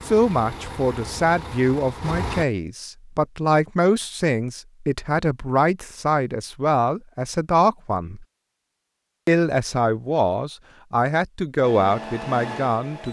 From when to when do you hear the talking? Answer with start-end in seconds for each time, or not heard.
0.1-8.2, 9.2-13.0.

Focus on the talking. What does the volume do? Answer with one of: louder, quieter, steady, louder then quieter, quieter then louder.
steady.